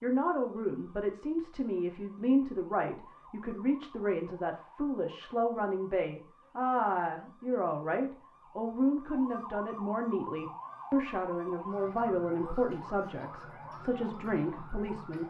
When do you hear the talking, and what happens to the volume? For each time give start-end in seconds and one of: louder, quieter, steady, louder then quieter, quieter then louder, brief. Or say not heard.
0.0-15.2 steady.